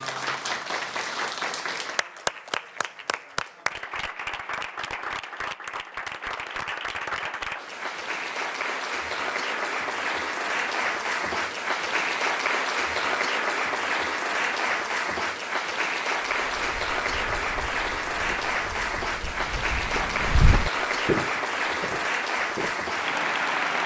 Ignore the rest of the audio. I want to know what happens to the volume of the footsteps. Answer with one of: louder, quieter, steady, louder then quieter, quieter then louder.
louder then quieter.